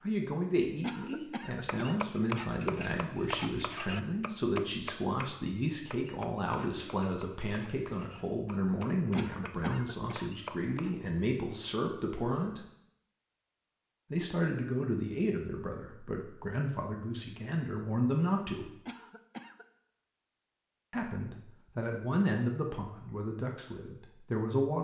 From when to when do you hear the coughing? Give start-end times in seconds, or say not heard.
0.8-2.5, 9.1-10.3, 18.9-19.6.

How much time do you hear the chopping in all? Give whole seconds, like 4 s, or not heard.
9 s.